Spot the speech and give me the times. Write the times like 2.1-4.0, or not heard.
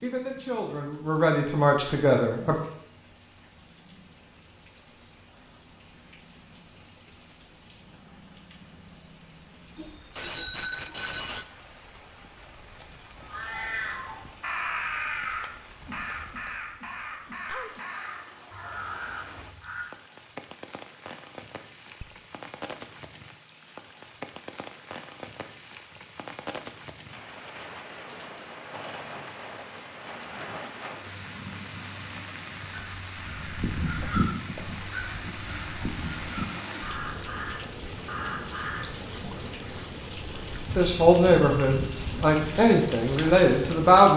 0.0-2.5, 40.8-44.1.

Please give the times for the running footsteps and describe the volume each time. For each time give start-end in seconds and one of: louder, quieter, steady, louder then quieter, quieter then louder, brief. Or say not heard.
not heard.